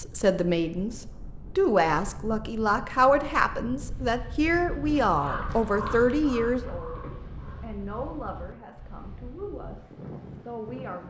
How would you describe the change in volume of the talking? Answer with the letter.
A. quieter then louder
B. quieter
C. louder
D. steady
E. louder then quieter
B.